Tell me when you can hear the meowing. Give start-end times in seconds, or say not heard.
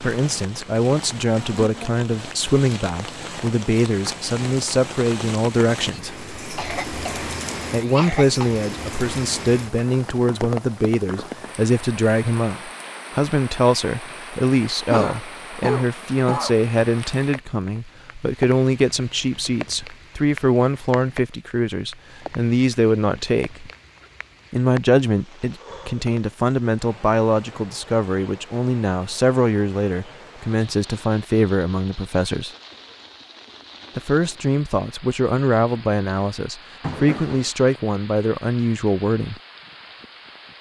not heard.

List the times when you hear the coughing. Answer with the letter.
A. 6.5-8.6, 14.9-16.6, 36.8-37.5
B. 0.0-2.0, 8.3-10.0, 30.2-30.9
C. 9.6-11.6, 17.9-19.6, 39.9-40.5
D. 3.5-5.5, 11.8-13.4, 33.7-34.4
A.